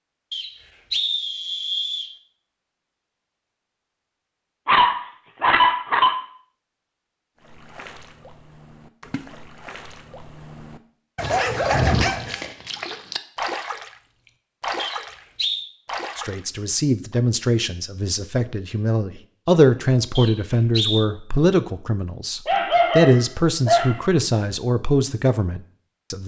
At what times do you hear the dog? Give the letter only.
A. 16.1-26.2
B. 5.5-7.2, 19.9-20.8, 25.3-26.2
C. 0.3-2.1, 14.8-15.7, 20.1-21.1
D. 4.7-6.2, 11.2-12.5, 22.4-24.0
D.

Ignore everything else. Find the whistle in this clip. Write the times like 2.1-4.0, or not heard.
0.3-2.1, 14.8-15.7, 20.1-21.1.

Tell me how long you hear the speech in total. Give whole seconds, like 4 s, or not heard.
10 s.